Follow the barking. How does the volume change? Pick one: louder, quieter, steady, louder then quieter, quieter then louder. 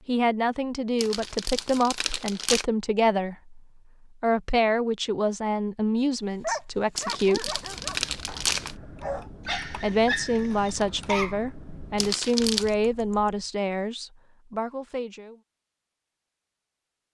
quieter then louder.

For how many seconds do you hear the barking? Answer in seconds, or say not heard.
5 s.